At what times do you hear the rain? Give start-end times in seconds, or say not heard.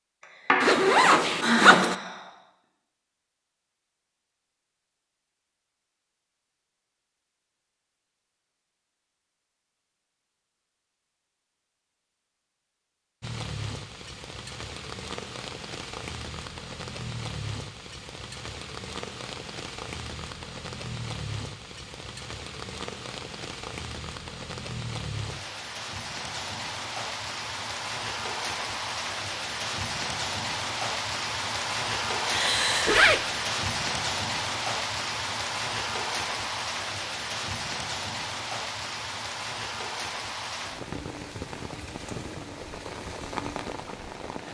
13.2-44.4.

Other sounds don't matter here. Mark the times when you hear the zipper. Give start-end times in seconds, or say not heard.
0.6-1.9, 32.4-33.2.